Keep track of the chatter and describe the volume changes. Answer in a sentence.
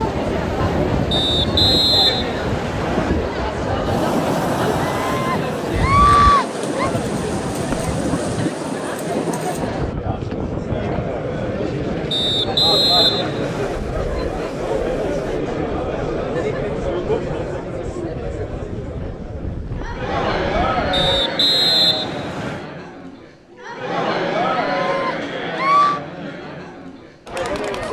The volume of the chatter stays about the same.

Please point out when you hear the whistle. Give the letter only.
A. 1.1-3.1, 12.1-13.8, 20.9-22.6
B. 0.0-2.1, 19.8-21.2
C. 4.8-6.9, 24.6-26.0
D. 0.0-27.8
A.